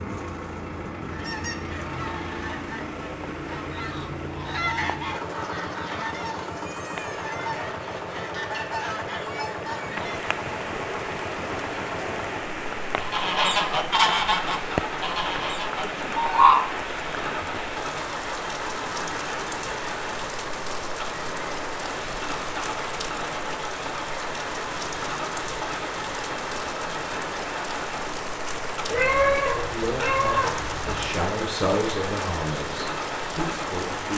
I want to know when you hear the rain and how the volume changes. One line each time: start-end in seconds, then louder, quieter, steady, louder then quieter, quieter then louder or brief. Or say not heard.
0.0-34.1 louder.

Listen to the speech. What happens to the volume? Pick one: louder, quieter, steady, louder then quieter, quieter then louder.
louder then quieter.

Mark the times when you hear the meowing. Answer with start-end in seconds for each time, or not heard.
28.9-31.1.